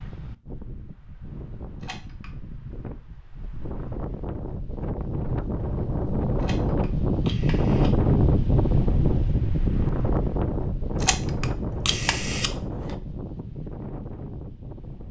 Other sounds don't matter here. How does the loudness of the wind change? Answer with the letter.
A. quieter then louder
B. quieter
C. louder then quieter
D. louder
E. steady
C.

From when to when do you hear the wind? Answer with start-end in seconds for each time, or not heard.
0.0-15.0.